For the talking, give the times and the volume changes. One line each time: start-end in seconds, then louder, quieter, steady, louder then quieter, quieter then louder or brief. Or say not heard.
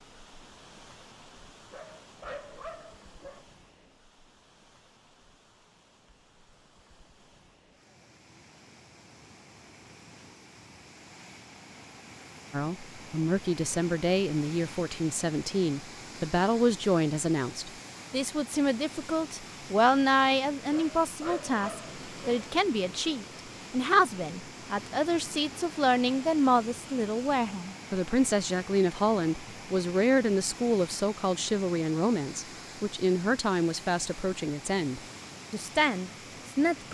12.5-36.8 steady.